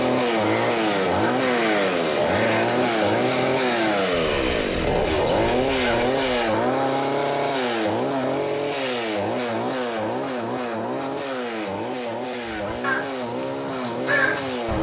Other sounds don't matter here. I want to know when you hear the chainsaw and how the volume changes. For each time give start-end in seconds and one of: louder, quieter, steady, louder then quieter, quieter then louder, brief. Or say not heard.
0.0-14.7 quieter.